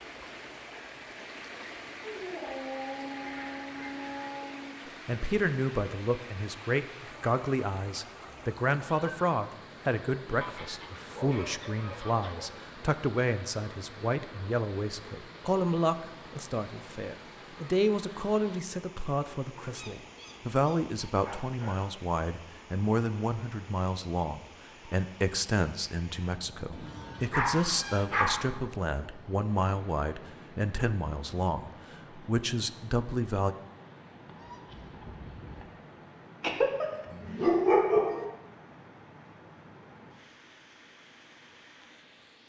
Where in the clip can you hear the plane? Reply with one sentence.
You can't hear the plane here.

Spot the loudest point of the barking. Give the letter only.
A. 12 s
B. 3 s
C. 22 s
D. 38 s
D.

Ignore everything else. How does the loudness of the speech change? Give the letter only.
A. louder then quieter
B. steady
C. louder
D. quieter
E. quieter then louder
B.